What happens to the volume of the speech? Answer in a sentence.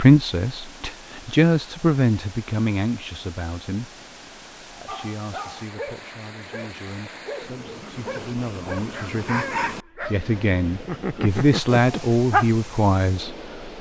The loudness of the speech goes down, then up.